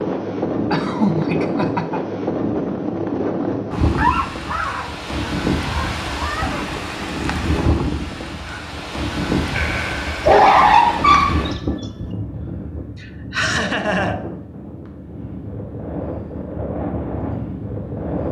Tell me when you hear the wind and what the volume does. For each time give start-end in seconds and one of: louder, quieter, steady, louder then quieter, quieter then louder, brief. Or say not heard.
0.0-18.2 quieter.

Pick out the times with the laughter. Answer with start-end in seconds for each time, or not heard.
0.7-2.0, 9.5-10.3, 13.0-14.2.